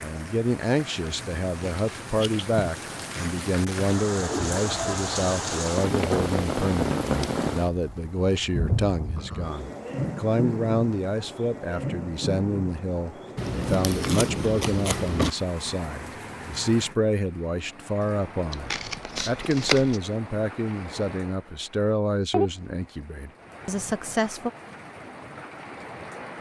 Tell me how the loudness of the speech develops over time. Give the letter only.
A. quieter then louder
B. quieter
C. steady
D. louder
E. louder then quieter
C.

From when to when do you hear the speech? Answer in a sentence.
You can hear the speech from 0.0 to 24.5 s.